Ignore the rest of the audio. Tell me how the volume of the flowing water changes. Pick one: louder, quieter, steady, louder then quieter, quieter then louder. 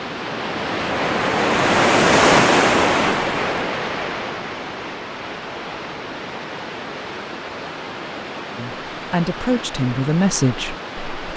quieter.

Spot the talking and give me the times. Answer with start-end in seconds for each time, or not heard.
8.6-11.3.